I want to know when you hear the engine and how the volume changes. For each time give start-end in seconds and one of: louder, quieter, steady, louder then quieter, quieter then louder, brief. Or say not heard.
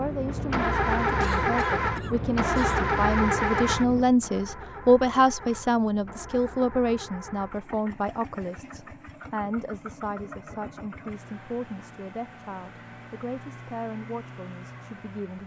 0.0-15.4 quieter.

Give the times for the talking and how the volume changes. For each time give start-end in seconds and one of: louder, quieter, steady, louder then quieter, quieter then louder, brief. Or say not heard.
0.0-15.4 louder then quieter.